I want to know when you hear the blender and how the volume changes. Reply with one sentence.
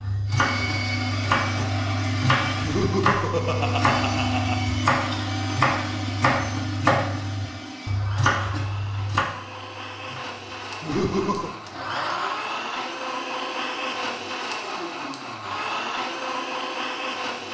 The blender can be heard from 0.0 to 17.4 s, getting quieter then louder.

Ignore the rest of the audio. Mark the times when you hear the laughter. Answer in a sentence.
The laughter can be heard from 2.6 to 4.7 s and from 10.8 to 11.5 s.